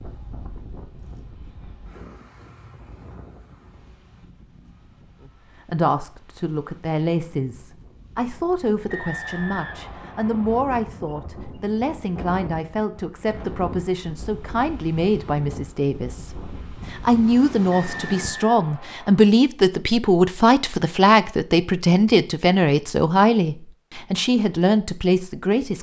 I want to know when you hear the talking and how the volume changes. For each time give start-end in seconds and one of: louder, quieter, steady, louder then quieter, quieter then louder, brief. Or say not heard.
5.7-25.7 louder.